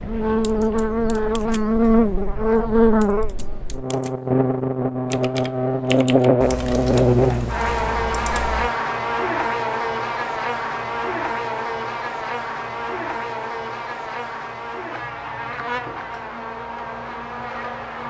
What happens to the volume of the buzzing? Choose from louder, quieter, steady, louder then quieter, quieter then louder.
quieter.